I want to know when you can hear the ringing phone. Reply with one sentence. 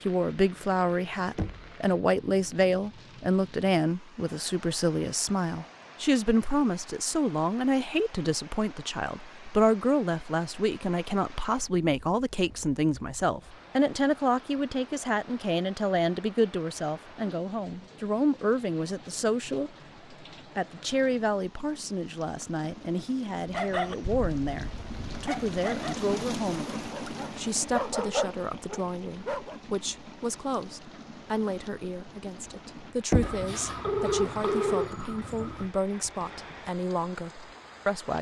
The ringing phone can be heard from 33.2 to 35.7 s.